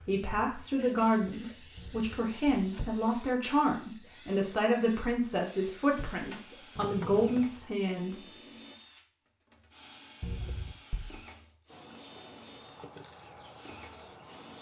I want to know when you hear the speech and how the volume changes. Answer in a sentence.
You can hear the speech from 0.1 to 8.2 s, at a steady volume.